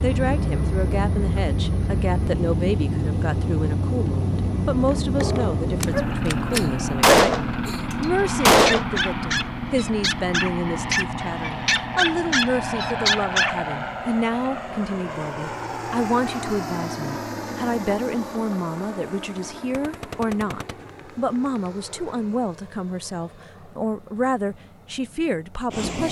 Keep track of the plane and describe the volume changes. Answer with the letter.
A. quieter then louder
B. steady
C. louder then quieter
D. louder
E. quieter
E.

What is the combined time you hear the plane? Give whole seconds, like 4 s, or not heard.
26 s.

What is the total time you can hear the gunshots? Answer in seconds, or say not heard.
6 s.